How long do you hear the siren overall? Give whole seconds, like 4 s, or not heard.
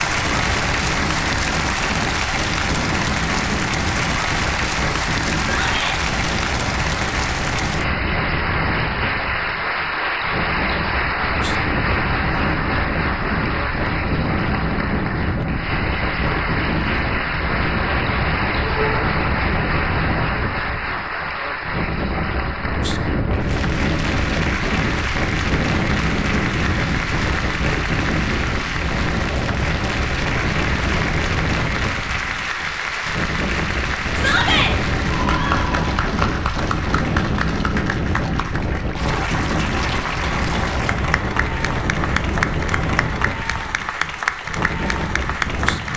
not heard.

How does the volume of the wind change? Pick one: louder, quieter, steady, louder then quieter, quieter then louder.
steady.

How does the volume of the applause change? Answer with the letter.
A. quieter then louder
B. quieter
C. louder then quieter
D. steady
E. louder
D.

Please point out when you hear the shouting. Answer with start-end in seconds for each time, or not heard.
5.5-6.0, 18.6-19.1, 34.1-34.8.